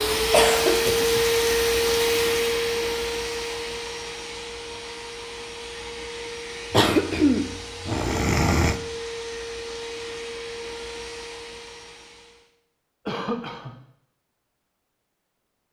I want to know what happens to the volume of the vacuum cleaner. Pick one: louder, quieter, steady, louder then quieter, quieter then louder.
quieter.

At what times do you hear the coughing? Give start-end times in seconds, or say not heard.
0.3-1.3, 6.7-8.8, 13.1-13.7.